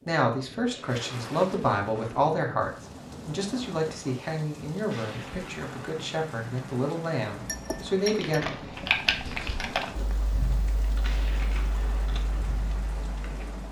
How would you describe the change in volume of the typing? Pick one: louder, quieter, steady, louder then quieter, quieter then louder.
louder then quieter.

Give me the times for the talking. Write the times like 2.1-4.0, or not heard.
0.1-8.4.